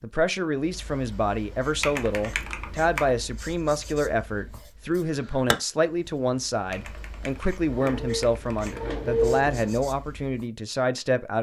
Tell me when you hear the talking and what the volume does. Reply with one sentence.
The talking can be heard from 0.0 to 11.3 s, at a steady volume.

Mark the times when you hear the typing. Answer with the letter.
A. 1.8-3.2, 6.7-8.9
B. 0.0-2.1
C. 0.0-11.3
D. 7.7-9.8
A.